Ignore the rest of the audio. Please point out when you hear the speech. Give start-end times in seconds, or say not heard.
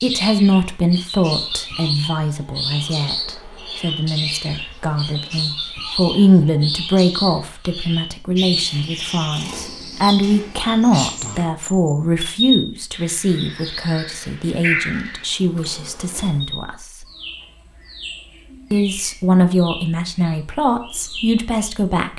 0.0-17.1, 18.7-22.1.